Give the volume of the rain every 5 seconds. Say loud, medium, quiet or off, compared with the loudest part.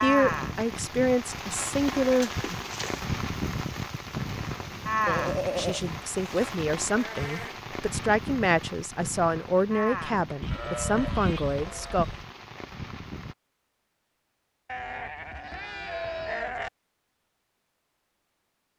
loud, loud, medium, off.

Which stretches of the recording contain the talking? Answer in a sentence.
You can hear the talking from 0.0 to 2.5 s and from 5.5 to 12.1 s.